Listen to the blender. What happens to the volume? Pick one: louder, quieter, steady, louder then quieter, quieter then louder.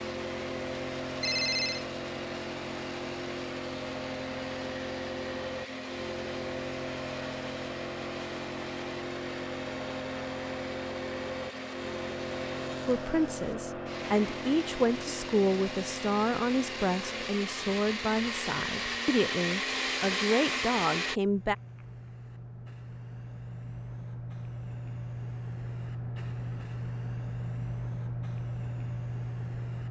louder.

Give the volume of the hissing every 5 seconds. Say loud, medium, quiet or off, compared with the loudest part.
loud, loud, loud, medium, medium, loud.